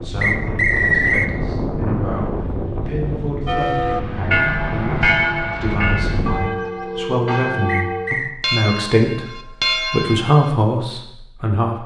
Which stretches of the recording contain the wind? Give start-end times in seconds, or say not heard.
0.0-6.5.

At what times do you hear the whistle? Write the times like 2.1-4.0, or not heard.
0.2-1.3, 7.7-8.3.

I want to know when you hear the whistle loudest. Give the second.
1 s.